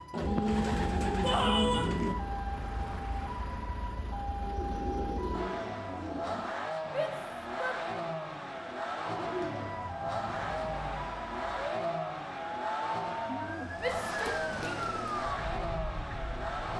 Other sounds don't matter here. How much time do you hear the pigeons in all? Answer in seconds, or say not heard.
8 s.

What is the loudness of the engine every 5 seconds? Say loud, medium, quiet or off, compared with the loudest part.
medium, loud, loud, loud.